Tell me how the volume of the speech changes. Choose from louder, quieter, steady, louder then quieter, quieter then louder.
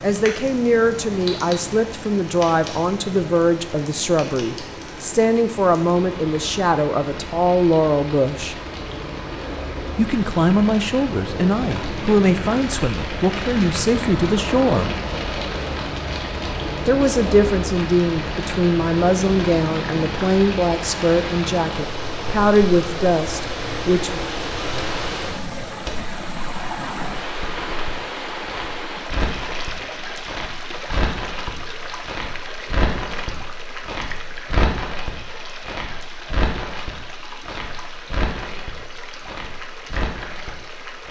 steady.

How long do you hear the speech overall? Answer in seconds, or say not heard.
21 s.